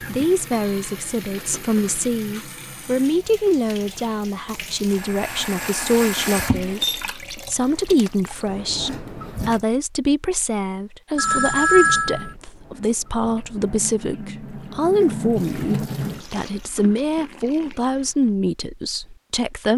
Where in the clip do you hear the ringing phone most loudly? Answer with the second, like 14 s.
12 s.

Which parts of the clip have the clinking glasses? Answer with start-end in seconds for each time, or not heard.
6.8-7.7.